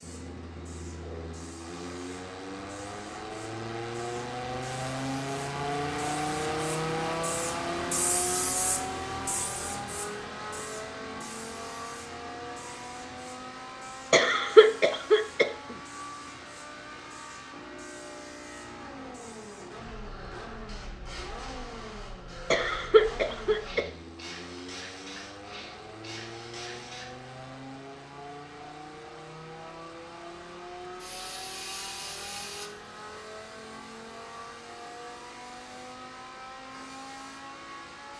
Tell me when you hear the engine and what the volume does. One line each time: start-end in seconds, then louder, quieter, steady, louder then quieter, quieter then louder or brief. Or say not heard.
0.0-38.1 quieter.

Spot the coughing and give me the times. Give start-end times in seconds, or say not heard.
14.1-15.5, 22.5-23.9.